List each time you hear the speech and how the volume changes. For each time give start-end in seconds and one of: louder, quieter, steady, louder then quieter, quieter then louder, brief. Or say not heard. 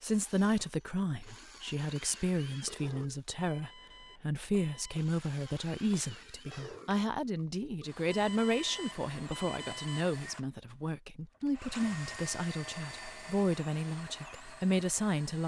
0.0-15.4 steady.